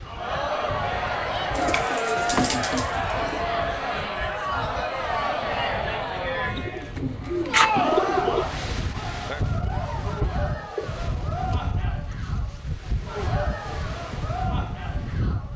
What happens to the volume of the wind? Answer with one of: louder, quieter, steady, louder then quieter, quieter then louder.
louder.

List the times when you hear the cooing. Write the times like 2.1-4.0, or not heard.
1.5-3.5, 6.5-8.4, 10.6-12.6.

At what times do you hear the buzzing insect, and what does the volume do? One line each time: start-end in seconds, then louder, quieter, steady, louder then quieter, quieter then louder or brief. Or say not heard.
not heard.